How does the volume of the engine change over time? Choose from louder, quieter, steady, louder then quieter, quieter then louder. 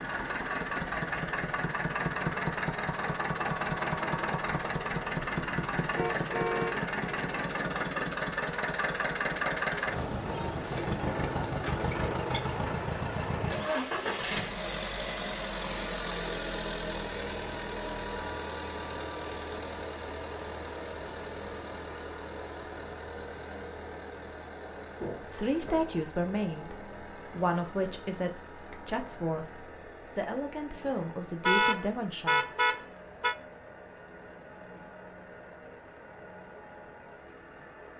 quieter.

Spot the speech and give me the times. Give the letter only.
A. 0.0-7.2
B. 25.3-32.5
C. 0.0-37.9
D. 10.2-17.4
B.